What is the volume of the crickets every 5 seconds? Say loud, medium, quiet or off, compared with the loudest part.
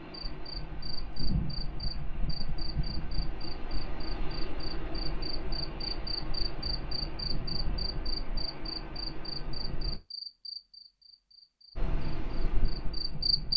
medium, loud, loud.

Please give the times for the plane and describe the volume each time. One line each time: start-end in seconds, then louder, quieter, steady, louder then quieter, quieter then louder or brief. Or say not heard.
0.0-10.0 steady
11.8-13.5 brief.